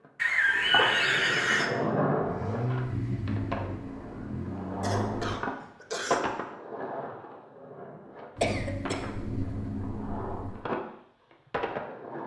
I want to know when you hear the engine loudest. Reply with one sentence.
The loudest moment of the engine is at 3 seconds.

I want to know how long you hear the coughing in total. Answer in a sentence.
The coughing can be heard for 4 seconds in total.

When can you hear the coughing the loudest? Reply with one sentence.
The loudest moment of the coughing is at 1 second.